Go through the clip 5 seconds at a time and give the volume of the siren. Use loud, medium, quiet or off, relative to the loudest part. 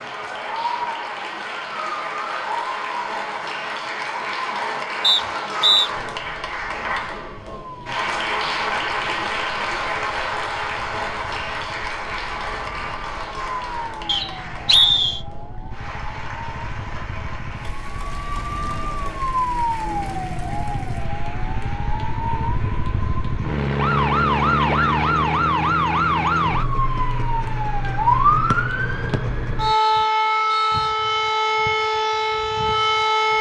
medium, quiet, quiet, medium, loud, loud, loud.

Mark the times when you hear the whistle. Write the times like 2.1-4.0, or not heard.
5.0-5.9, 14.1-15.2, 28.5-30.9.